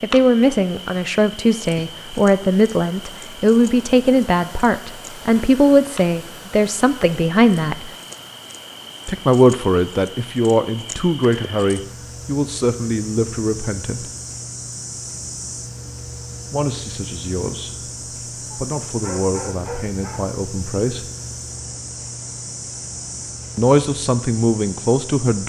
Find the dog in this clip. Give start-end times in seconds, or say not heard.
18.5-20.2.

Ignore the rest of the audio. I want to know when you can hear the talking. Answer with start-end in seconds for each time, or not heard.
0.0-7.9, 9.1-14.1, 16.5-21.1, 23.6-25.4.